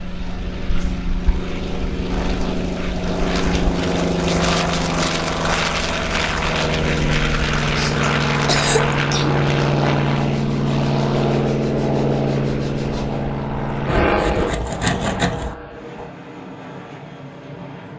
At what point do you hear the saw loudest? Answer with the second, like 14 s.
15 s.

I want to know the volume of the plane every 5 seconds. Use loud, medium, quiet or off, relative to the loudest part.
loud, loud, loud, quiet.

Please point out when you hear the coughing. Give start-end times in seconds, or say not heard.
7.8-9.4.